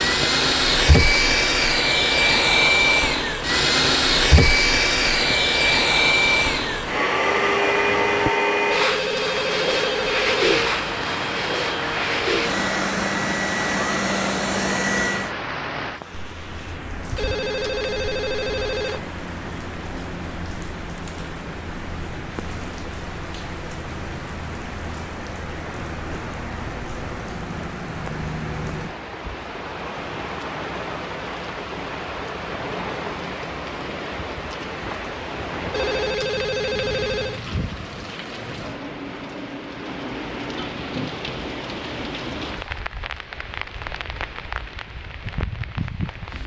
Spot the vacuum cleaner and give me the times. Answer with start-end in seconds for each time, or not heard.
0.0-15.3.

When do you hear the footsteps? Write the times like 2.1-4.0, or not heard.
not heard.